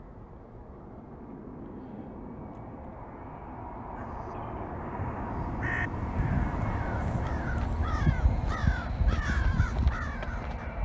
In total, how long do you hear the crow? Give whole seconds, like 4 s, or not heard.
7 s.